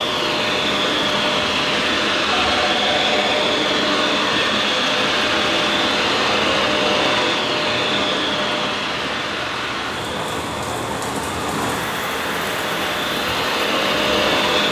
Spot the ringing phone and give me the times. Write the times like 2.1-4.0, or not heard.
2.3-3.3.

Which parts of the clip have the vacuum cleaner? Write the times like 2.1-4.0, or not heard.
0.0-14.6.